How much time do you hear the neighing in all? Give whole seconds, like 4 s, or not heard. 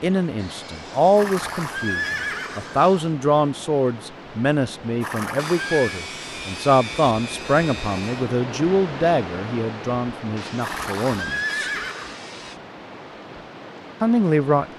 4 s.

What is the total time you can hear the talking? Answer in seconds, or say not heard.
12 s.